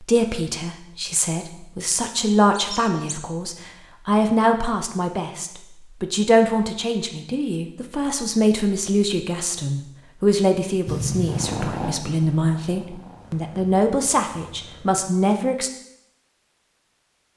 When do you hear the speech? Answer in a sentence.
You can hear the speech from 0.0 to 15.7 s.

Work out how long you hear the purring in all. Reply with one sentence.
The purring can be heard for 4 seconds in total.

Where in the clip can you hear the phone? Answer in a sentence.
You can't hear the phone here.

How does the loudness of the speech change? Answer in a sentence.
The volume of the speech stays about the same.